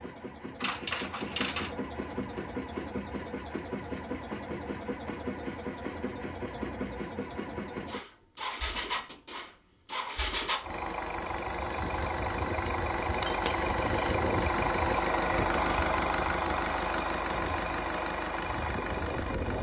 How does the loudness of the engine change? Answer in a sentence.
The loudness of the engine goes up.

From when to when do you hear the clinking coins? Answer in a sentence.
The clinking coins can be heard from 0.6 to 1.8 s and from 13.2 to 14.2 s.